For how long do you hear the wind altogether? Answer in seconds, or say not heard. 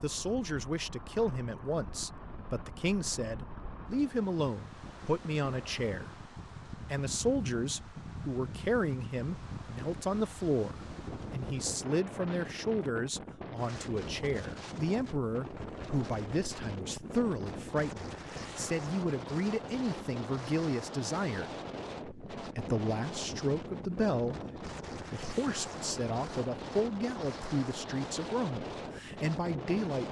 30 s.